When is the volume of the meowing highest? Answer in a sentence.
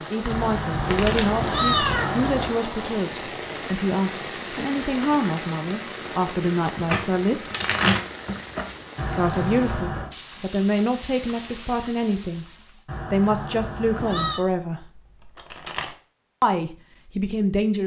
The loudest moment of the meowing is at 2 seconds.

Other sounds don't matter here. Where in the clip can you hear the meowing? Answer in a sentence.
The meowing can be heard from 0.3 to 2.5 s, from 8.9 to 10.2 s and from 12.8 to 14.4 s.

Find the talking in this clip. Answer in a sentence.
The talking can be heard from 0.1 to 7.4 s, from 9.1 to 12.4 s, from 13.1 to 14.9 s and from 16.4 to 17.8 s.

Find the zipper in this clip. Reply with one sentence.
The zipper can't be heard in this clip.